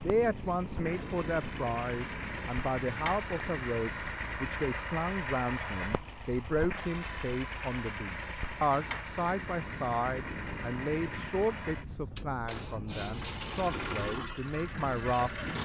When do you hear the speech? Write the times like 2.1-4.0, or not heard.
0.0-15.4.